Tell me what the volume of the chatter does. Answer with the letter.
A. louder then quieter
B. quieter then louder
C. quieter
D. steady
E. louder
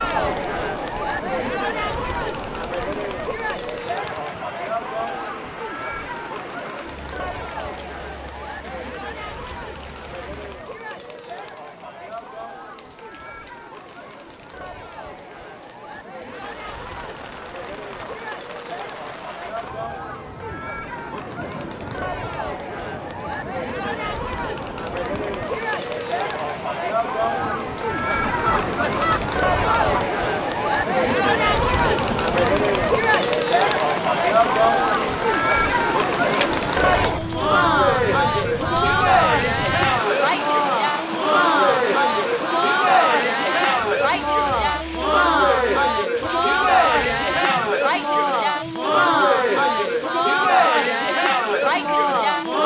B.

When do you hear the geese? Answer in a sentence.
The geese can be heard from 28.1 to 30.1 s.